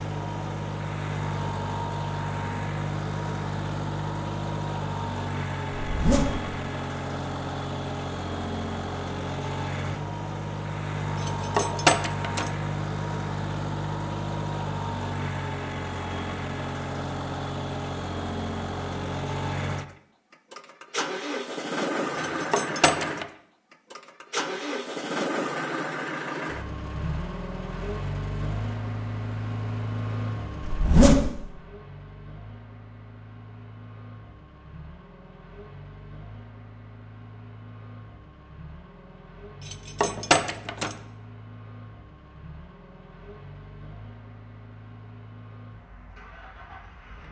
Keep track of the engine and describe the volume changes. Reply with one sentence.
The volume of the engine goes down.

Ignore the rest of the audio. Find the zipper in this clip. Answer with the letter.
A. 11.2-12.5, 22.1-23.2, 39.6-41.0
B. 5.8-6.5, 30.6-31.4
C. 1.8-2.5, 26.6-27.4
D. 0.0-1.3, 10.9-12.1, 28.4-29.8
B.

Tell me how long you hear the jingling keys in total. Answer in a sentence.
The jingling keys can be heard for 4 seconds in total.